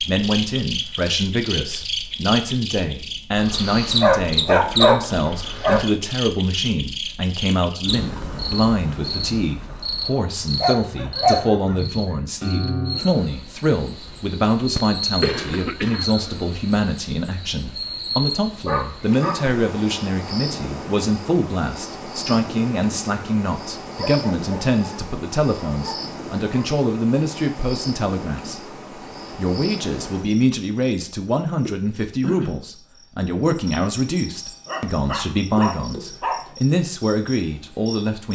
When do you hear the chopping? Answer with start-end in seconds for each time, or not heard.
not heard.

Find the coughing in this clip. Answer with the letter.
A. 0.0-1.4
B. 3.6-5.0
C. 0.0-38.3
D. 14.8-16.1
D.